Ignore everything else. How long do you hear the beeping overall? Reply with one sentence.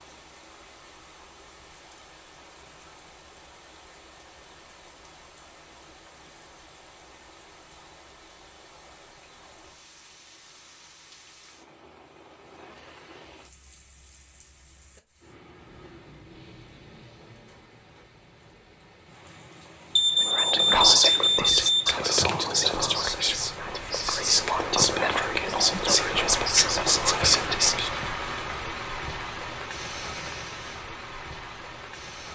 You can hear the beeping for 2 seconds altogether.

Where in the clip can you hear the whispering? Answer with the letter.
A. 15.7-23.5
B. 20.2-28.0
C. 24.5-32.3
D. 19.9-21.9
B.